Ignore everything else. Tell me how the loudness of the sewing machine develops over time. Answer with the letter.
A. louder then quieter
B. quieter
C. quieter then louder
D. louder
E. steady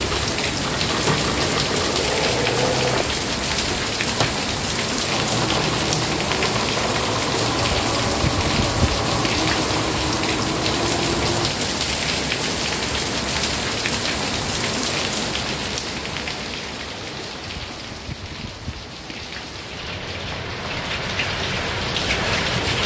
E.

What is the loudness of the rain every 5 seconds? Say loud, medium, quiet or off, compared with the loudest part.
loud, loud, loud, medium, loud.